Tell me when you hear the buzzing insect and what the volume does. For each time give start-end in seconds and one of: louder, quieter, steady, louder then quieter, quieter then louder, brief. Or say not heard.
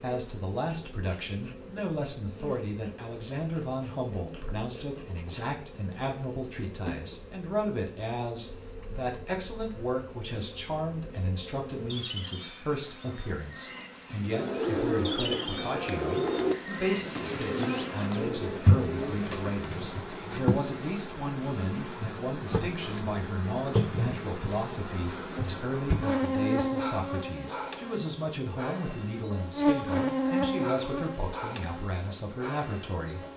0.0-33.3 louder.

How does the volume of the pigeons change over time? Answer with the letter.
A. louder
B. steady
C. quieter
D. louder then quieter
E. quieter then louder
C.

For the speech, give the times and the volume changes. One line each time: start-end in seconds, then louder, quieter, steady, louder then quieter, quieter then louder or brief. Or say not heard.
0.0-33.2 steady.